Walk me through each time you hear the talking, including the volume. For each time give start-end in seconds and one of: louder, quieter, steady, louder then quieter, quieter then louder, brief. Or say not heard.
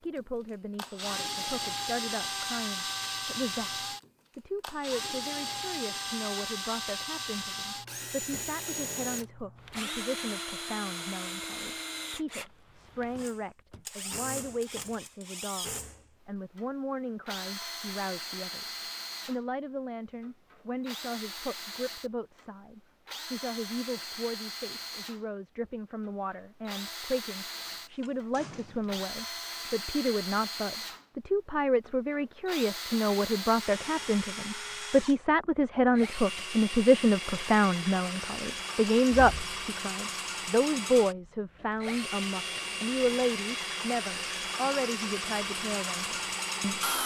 0.0-46.9 louder.